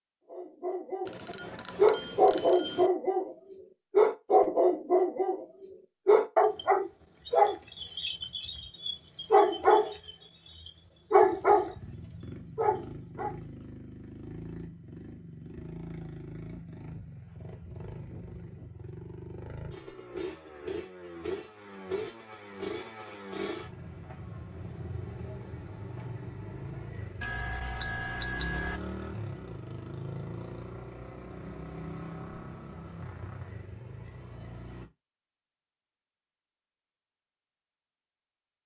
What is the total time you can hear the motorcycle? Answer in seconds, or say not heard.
24 s.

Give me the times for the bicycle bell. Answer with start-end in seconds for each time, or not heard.
1.1-2.9, 27.2-28.8.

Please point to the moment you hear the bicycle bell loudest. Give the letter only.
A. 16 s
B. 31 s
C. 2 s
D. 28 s
D.